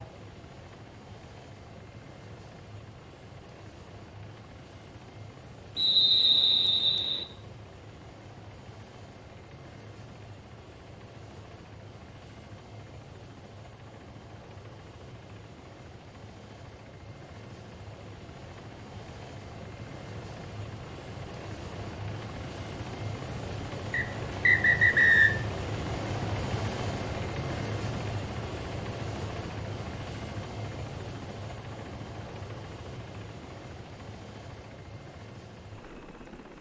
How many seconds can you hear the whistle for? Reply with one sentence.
You can hear the whistle for 3 seconds altogether.